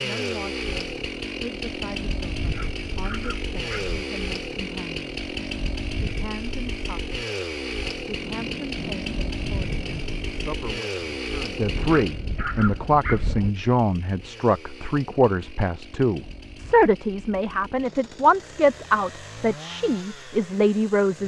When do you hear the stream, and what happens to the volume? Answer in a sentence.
You can't hear the stream here.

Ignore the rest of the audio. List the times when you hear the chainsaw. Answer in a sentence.
You can hear the chainsaw from 0.0 to 21.2 s.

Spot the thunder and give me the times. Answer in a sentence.
You can hear the thunder from 8.1 to 10.6 s.